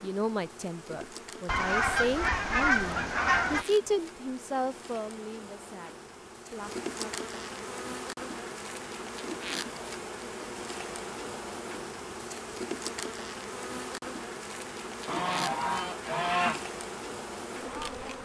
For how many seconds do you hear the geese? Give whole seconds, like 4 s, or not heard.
4 s.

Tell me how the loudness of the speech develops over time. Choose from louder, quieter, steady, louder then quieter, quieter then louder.
louder then quieter.